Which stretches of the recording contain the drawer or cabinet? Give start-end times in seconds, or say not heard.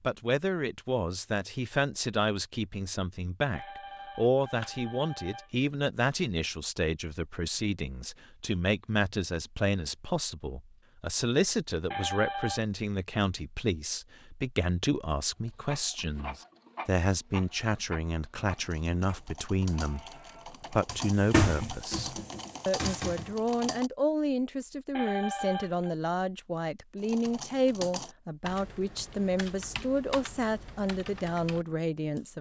20.9-23.4.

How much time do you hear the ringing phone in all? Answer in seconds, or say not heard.
4 s.